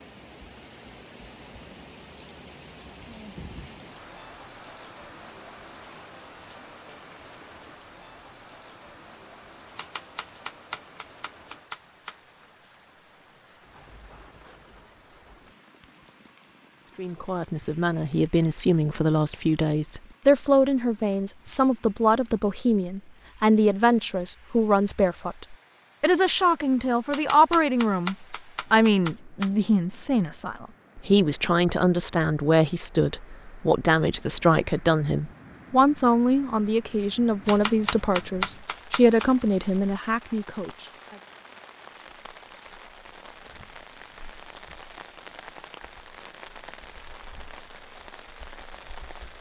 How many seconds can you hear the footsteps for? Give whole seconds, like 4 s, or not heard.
not heard.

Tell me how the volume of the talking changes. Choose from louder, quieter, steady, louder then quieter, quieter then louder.
steady.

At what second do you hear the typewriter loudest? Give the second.
38 s.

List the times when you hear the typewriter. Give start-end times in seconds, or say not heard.
9.8-12.2, 27.1-29.5, 37.5-39.5.